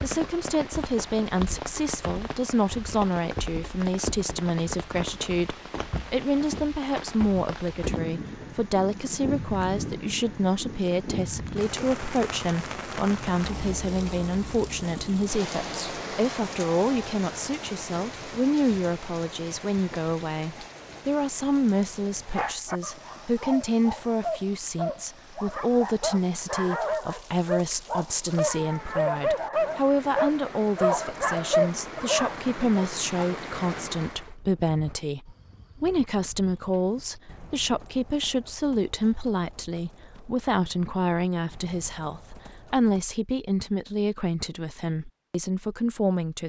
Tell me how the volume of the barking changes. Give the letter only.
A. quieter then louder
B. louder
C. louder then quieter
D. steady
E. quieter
B.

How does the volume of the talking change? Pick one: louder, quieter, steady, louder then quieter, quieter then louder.
steady.